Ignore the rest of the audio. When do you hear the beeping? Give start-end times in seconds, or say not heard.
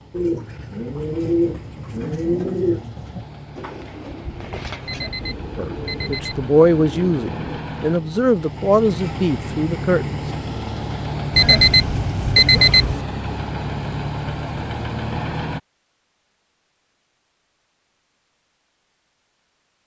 4.8-6.4, 11.3-13.0.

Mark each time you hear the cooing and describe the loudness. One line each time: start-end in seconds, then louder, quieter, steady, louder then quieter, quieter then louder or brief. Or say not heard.
0.1-7.6 quieter.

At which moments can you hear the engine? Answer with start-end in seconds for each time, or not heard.
0.0-15.6.